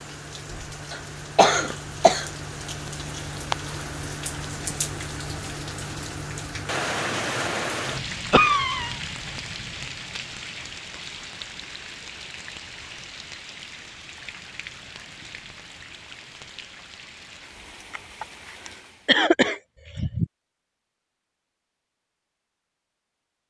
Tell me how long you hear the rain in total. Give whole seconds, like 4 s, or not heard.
19 s.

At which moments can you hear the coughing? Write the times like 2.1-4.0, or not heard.
0.9-2.3, 8.3-8.9, 17.9-20.2.